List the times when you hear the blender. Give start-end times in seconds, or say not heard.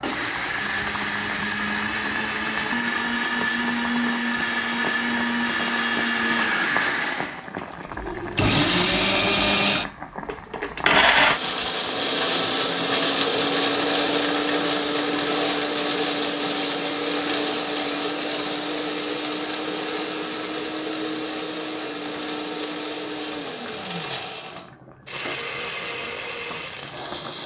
0.0-27.4.